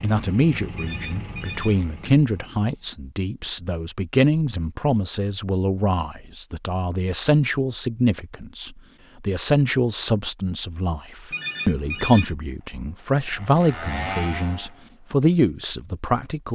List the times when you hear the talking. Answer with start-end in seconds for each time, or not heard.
0.0-11.0, 11.7-16.5.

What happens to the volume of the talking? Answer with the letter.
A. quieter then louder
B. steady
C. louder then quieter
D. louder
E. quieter
B.